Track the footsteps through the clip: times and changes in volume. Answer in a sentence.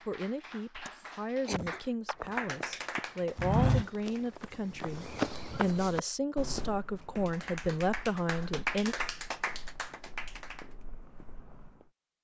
You can hear the footsteps from 2.1 to 11.9 s, getting quieter.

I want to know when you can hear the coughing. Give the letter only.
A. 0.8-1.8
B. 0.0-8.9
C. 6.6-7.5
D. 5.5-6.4
A.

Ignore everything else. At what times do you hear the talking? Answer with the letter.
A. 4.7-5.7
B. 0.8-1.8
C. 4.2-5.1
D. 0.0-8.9
D.